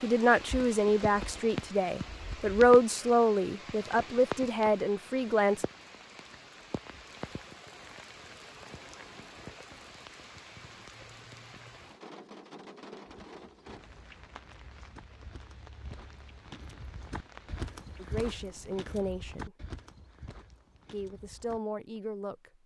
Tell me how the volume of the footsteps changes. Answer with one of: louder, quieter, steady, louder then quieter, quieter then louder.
louder then quieter.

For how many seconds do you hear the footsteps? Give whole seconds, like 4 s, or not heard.
9 s.